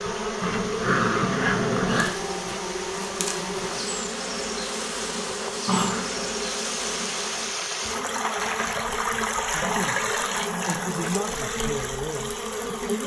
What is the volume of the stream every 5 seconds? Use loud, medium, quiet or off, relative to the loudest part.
medium, loud, loud.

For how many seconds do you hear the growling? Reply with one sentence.
The growling can be heard for 4 seconds in total.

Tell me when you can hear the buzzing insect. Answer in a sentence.
The buzzing insect can be heard from 0.0 to 13.0 s.